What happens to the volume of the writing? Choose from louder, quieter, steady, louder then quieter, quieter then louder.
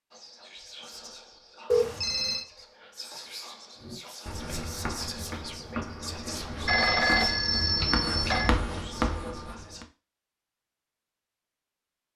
louder.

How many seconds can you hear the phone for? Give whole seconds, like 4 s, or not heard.
3 s.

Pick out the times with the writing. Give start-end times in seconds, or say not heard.
3.8-9.8.